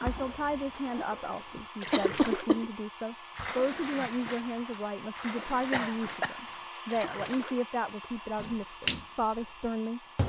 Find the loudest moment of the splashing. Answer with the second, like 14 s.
9 s.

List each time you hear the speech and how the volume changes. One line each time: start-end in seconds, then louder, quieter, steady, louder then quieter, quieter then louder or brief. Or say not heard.
0.0-10.0 steady.